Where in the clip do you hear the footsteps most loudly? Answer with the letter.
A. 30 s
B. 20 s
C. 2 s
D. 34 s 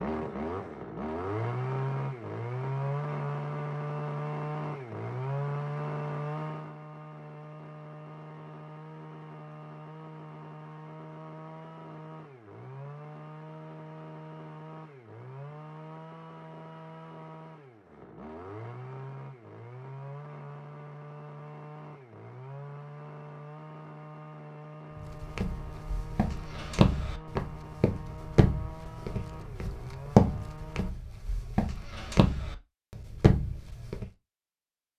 A.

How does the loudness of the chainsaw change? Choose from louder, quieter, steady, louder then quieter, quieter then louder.
quieter.